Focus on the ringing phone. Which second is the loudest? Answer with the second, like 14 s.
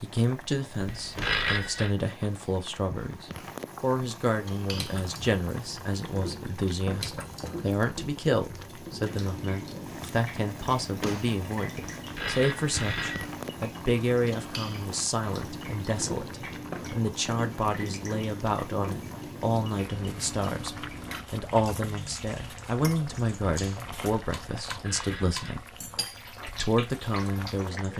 1 s.